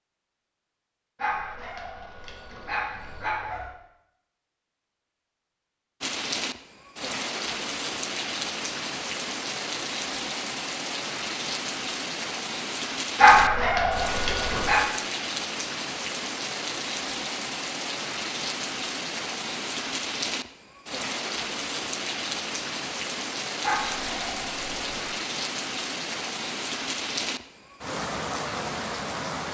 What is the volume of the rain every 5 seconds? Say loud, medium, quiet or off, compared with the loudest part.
off, loud, loud, loud, loud, loud.